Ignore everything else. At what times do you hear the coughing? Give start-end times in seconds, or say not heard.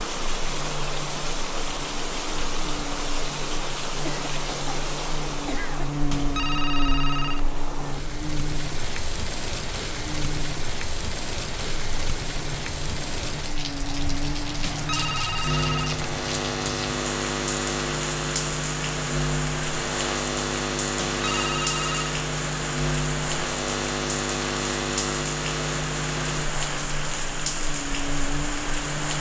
4.0-5.9.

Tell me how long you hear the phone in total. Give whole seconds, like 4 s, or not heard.
4 s.